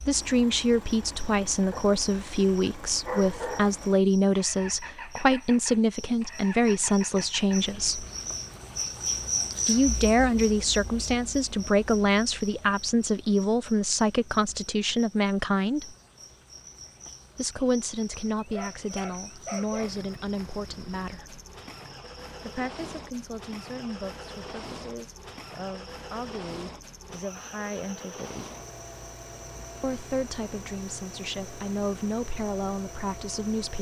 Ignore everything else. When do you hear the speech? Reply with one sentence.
You can hear the speech from 0.1 to 8.1 s, from 9.7 to 15.9 s, from 17.4 to 21.4 s, from 22.4 to 28.4 s and from 29.8 to 33.7 s.